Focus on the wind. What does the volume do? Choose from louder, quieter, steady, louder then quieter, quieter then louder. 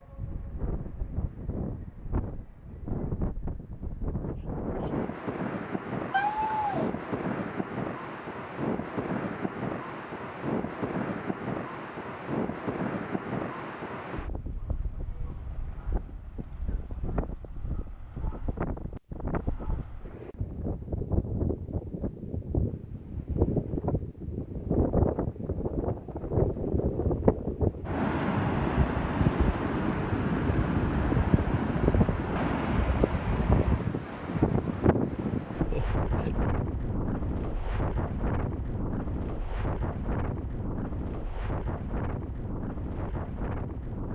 louder then quieter.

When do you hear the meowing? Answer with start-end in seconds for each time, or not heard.
6.1-6.9, 35.7-36.5.